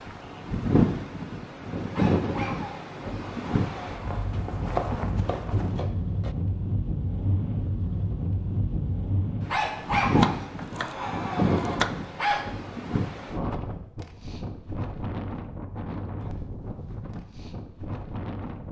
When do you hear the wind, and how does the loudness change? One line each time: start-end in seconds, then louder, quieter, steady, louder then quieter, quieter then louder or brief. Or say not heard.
0.0-18.6 quieter.